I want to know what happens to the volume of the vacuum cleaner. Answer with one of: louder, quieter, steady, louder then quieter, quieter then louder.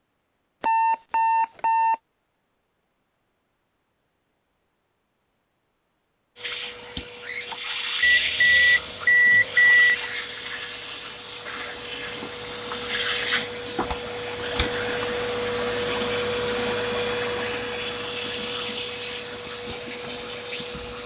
steady.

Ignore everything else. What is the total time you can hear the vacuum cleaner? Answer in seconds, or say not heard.
15 s.